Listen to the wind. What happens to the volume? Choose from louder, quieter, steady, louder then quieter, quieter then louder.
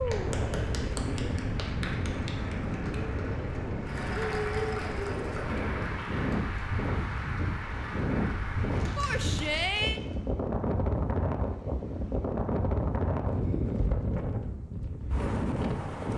steady.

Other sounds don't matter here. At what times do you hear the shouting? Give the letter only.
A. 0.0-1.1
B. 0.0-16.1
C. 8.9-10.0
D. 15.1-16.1
C.